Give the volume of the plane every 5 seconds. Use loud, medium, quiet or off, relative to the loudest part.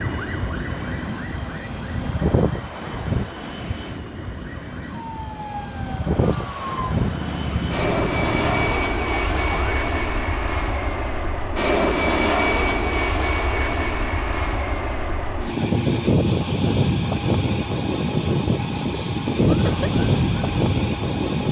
medium, loud, loud, loud, loud.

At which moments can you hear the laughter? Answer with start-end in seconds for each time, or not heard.
19.4-19.9.